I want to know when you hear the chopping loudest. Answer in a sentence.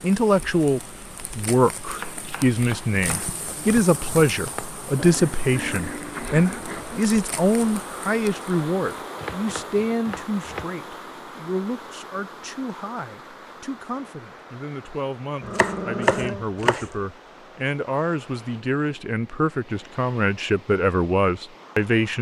The volume of the chopping peaks at 16 seconds.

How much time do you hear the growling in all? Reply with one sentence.
The growling can be heard for 3 seconds in total.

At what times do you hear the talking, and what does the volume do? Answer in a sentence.
You can hear the talking from 0.0 to 22.1 s, getting quieter then louder.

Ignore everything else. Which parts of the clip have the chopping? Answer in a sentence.
You can hear the chopping from 1.9 to 3.4 s, from 9.2 to 10.7 s and from 15.4 to 16.9 s.